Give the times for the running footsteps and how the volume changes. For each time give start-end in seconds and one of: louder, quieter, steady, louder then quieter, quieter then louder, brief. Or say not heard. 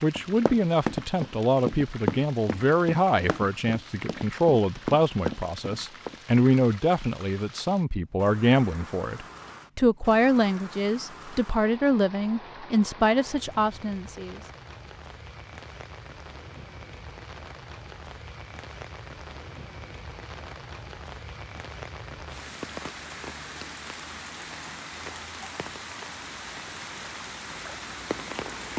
0.1-6.2 quieter then louder.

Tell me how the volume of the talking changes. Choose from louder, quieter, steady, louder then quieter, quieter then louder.
steady.